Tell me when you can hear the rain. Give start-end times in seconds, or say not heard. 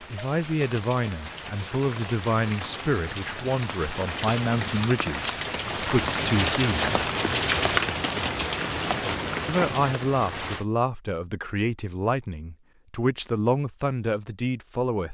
0.0-10.7.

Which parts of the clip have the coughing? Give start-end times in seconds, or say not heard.
not heard.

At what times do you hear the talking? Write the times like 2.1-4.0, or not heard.
0.1-7.1, 9.4-15.0.